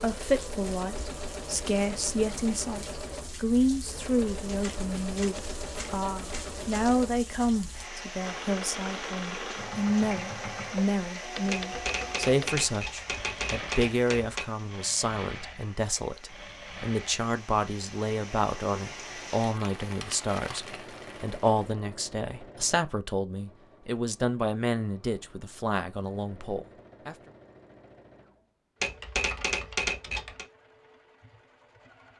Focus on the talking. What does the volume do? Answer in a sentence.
The loudness of the talking stays about the same.